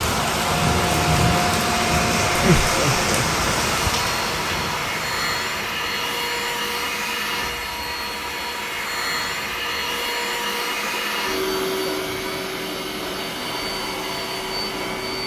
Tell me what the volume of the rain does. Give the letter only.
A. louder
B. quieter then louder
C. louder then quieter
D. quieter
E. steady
D.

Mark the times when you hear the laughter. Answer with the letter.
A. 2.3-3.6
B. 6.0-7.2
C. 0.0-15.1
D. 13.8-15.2
A.